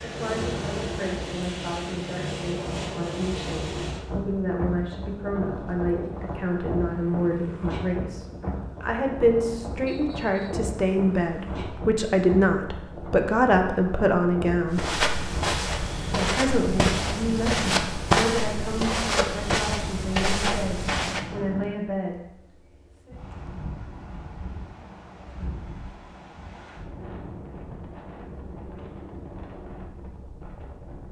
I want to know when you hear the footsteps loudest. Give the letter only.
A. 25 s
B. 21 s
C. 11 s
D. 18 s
D.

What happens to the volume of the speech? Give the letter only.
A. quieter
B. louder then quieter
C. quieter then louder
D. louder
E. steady
B.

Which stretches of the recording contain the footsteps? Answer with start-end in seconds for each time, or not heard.
14.7-21.2.